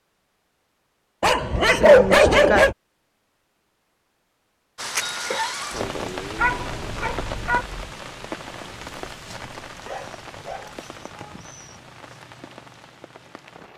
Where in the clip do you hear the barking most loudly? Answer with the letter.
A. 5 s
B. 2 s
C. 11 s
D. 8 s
B.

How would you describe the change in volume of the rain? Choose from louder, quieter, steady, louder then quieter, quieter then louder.
quieter.